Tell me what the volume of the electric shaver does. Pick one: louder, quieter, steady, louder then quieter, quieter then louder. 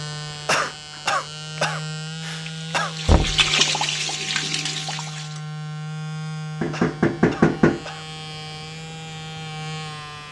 steady.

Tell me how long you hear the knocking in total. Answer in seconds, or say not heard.
2 s.